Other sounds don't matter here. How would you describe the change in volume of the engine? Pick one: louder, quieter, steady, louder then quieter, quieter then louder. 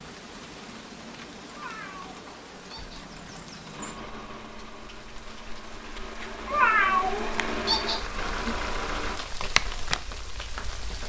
louder.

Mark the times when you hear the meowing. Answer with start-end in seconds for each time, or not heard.
1.5-3.0, 6.5-8.0.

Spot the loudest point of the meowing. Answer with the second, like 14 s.
7 s.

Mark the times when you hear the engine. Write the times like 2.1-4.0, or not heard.
3.7-9.2.